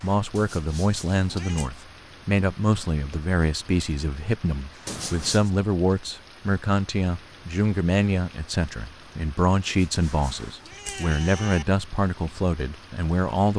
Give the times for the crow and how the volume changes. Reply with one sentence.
You can't hear the crow here.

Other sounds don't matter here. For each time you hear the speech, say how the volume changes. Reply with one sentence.
You can hear the speech from 0.0 to 13.5 s, at a steady volume.